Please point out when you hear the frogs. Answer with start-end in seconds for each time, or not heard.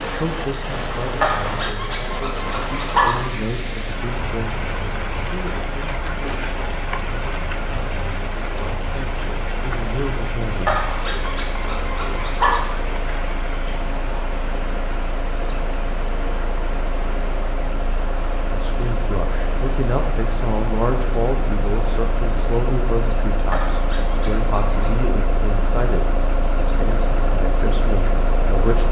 not heard.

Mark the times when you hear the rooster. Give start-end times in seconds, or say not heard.
not heard.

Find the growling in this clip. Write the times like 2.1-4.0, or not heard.
1.2-3.2, 10.7-12.7, 23.5-25.1.